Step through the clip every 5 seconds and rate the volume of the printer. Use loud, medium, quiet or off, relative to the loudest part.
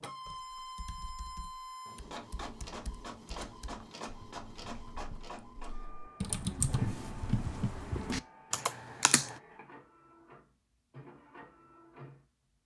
loud, medium, medium.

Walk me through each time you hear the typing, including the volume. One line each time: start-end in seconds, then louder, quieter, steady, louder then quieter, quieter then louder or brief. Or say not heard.
0.2-9.4 louder.